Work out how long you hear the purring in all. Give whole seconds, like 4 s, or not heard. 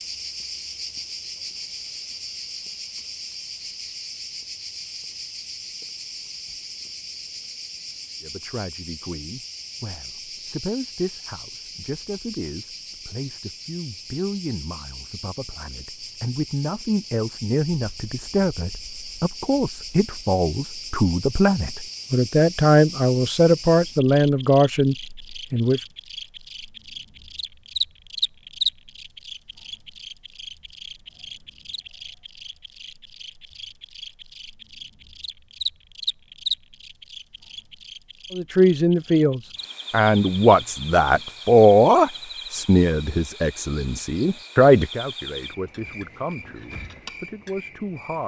not heard.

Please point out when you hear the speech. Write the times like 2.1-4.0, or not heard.
8.2-25.8, 38.3-48.2.